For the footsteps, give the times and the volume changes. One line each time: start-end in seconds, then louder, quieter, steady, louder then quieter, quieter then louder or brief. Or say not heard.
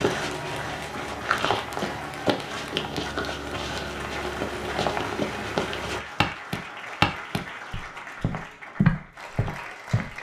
0.0-10.1 louder.